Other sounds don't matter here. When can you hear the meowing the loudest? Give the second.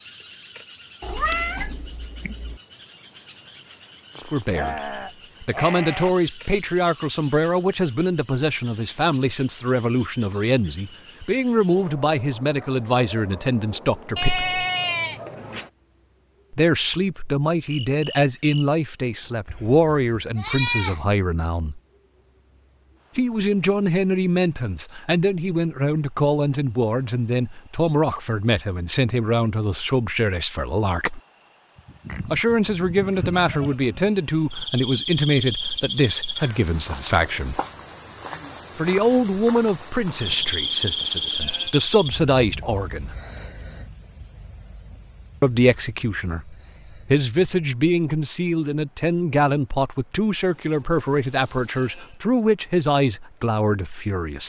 1 s.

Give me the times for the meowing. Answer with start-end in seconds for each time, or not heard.
1.0-2.6.